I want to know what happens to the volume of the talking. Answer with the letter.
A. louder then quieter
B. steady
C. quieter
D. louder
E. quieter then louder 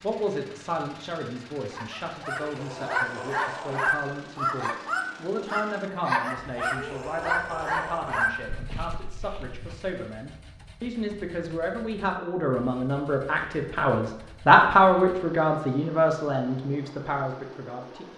D.